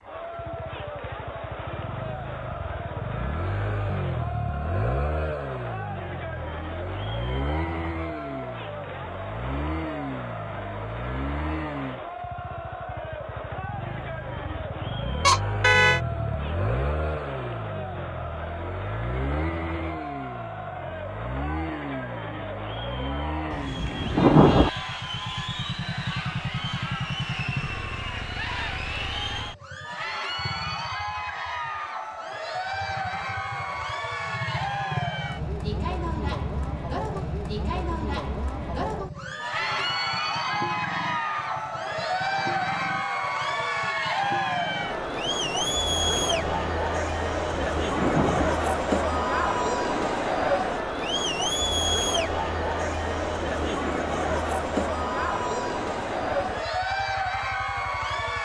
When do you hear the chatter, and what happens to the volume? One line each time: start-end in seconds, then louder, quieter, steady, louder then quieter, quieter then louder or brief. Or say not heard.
0.0-58.3 louder.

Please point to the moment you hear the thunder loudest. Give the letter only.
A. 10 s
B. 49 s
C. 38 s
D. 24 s
D.